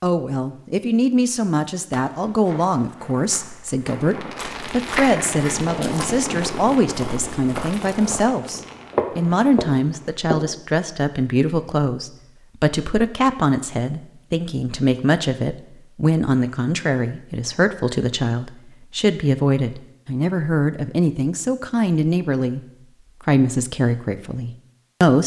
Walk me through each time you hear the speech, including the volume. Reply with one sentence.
You can hear the speech from 0.0 to 22.6 s, at a steady volume; and briefly from 23.2 to 25.2 s.